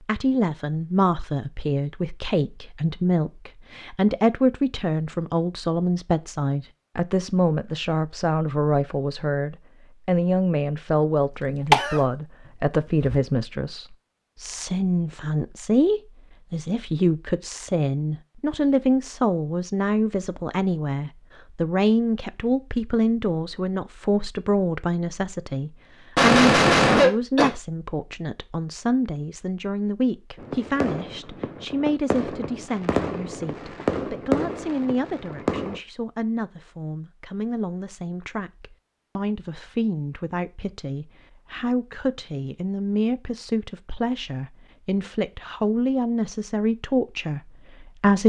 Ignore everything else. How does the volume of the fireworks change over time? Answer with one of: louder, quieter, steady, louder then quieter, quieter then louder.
louder then quieter.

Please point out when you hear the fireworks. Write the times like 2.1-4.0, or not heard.
30.4-35.8.